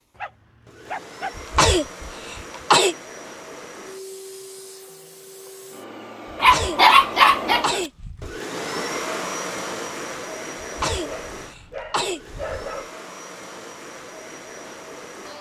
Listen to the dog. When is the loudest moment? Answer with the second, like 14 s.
7 s.